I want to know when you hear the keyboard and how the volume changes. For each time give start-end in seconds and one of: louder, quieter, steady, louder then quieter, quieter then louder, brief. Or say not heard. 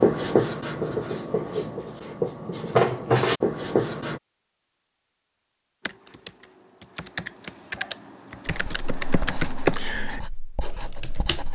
5.8-11.5 louder then quieter.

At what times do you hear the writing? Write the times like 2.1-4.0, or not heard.
0.0-4.2, 8.4-11.5.